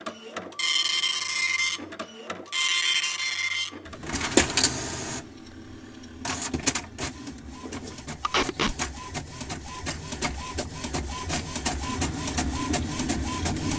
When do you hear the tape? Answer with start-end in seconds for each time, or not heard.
8.2-8.8.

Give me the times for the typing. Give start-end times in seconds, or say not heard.
not heard.